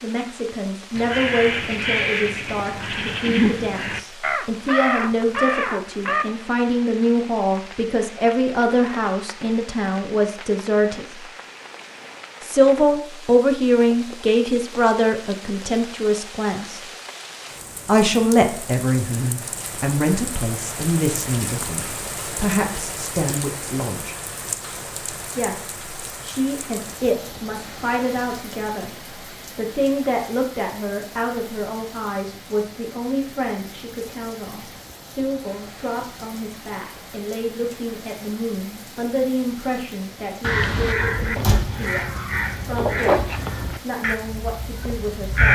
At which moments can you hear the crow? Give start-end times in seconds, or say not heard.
0.9-6.2, 40.4-45.5.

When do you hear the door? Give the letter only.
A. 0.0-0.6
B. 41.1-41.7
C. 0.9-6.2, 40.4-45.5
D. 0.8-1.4
B.